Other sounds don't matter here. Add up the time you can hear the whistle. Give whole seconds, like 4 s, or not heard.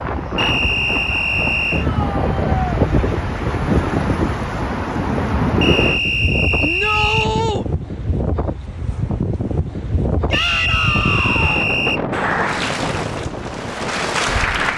5 s.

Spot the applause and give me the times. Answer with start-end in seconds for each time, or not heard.
12.1-14.7.